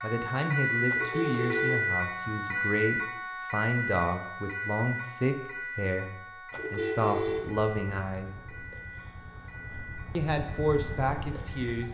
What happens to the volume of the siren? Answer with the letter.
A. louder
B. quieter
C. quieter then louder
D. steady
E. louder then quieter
B.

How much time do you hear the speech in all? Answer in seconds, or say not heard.
10 s.